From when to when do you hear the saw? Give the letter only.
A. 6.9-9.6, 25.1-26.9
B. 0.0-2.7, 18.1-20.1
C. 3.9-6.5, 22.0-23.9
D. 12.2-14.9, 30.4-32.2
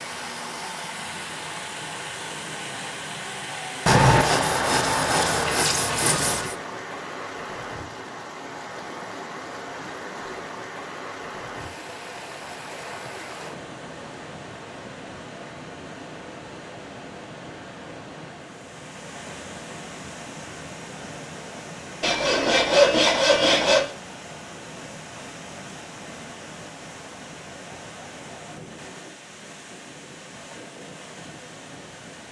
C.